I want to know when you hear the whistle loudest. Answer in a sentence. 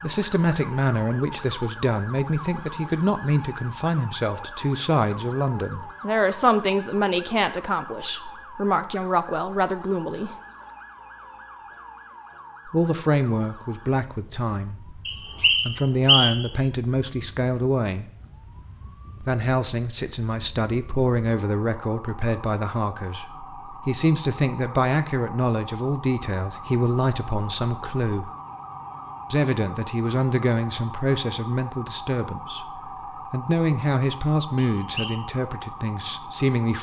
The volume of the whistle peaks at 16 seconds.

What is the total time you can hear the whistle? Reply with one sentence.
You can hear the whistle for 2 seconds altogether.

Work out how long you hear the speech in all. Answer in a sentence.
You can hear the speech for 32 seconds altogether.